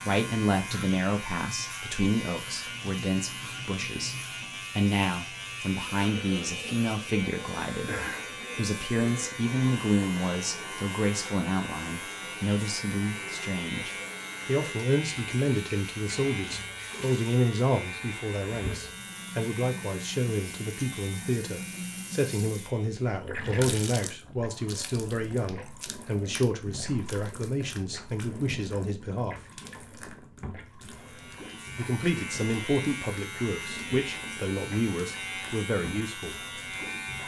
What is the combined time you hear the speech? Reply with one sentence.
The speech can be heard for 34 seconds in total.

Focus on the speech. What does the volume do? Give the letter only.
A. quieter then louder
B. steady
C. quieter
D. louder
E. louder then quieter
B.